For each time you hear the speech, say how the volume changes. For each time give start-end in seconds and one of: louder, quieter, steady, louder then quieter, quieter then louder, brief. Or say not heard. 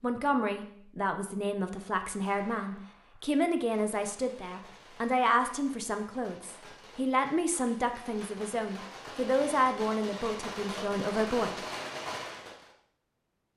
0.0-11.6 steady.